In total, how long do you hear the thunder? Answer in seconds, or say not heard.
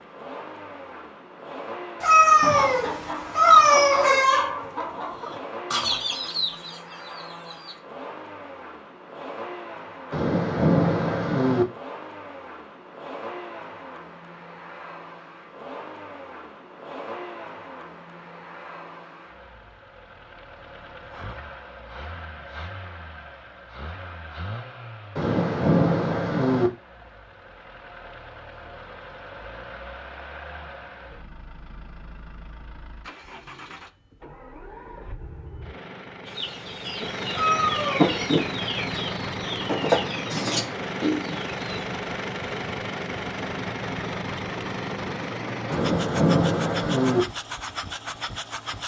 5 s.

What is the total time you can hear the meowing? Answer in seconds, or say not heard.
3 s.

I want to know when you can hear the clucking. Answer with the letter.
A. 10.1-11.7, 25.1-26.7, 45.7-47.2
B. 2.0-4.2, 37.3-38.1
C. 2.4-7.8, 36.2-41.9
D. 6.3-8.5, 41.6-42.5
C.